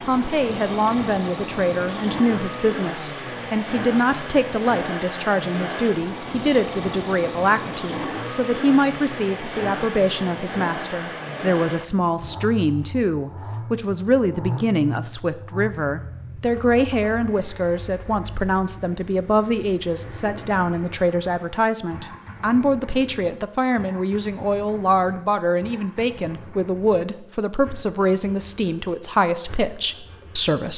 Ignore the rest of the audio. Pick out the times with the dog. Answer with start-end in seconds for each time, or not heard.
not heard.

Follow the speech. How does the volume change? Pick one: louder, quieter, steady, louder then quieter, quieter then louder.
steady.